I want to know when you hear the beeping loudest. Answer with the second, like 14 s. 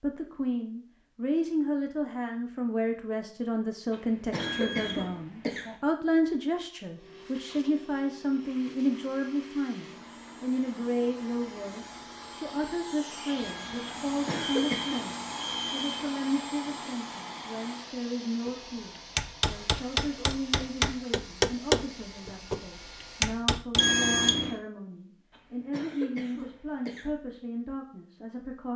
24 s.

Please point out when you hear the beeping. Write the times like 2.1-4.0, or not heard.
4.3-5.2, 13.3-16.1, 23.8-24.6.